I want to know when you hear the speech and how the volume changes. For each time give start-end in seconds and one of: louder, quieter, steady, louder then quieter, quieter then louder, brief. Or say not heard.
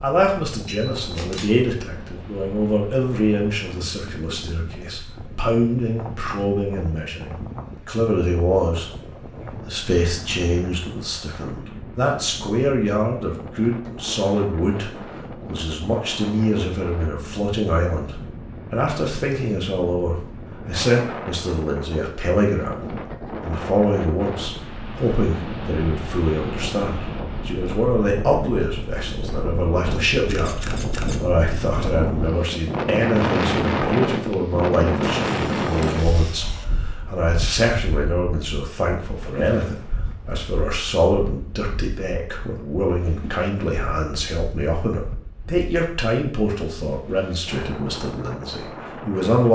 0.0-8.9 quieter then louder
9.5-49.5 steady.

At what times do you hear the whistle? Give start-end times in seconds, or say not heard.
not heard.